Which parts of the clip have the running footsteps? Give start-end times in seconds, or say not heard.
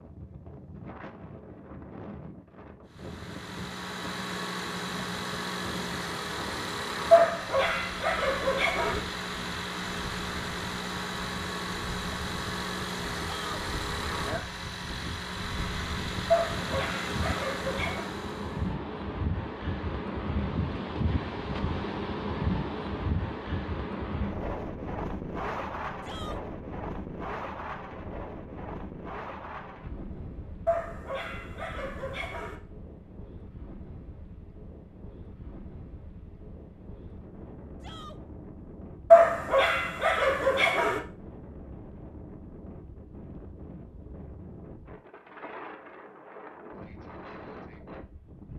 not heard.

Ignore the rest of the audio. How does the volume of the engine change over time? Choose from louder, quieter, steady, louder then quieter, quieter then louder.
steady.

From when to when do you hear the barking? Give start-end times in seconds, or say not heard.
7.1-9.0, 16.3-18.1, 30.6-32.5, 39.1-41.0.